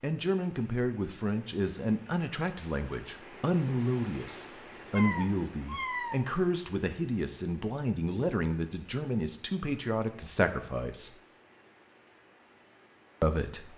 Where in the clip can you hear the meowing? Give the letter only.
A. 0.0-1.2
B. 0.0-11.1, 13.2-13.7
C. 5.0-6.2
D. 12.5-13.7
C.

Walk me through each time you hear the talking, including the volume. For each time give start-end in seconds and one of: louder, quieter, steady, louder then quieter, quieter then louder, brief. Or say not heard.
0.0-11.1 steady
13.2-13.7 brief.